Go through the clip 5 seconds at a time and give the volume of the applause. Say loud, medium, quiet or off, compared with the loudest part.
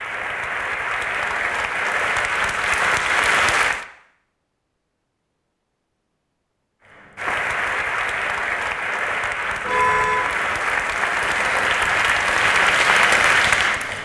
loud, medium, loud.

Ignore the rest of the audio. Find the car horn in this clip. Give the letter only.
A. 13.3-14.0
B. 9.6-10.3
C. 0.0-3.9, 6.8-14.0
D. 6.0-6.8
B.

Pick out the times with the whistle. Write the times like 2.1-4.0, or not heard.
not heard.